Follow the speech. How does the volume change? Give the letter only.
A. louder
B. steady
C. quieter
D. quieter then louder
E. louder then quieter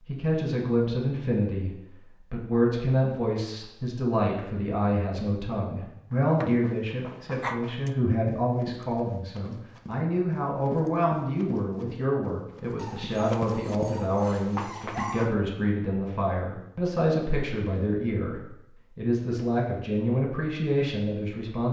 B.